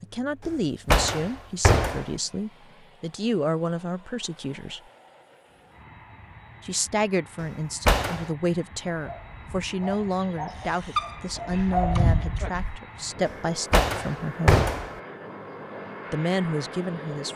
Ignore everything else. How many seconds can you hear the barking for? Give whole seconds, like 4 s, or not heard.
4 s.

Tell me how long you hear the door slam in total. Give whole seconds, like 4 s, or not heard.
4 s.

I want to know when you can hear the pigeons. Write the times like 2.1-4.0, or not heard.
not heard.